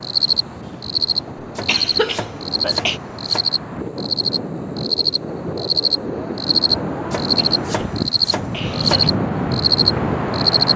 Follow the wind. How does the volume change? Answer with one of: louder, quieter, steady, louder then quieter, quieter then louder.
louder.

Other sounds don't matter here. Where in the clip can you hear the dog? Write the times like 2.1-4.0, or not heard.
not heard.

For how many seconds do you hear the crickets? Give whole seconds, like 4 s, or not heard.
11 s.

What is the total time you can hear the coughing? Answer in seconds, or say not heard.
3 s.